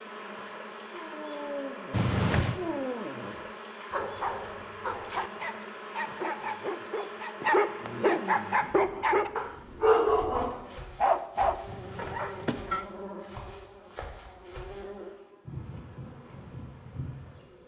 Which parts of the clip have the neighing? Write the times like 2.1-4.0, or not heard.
1.9-2.6, 11.7-12.8.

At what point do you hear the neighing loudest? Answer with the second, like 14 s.
2 s.